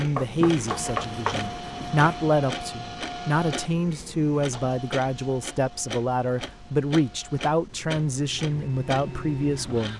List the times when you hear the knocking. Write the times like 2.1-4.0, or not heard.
0.1-1.4.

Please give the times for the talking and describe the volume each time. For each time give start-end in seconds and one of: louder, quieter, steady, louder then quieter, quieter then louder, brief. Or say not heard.
0.0-9.9 steady.